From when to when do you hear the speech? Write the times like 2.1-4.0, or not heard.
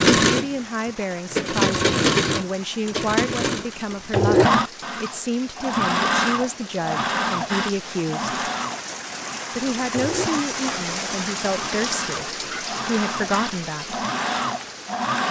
0.2-8.3, 9.6-14.1.